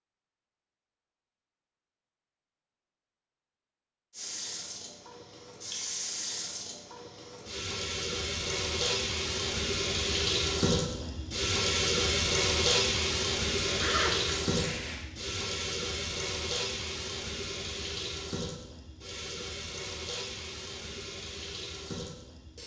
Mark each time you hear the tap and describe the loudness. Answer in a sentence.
The tap can be heard from 4.1 to 22.6 s, getting louder then quieter.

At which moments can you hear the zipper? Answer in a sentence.
You can hear the zipper from 13.6 to 15.1 s.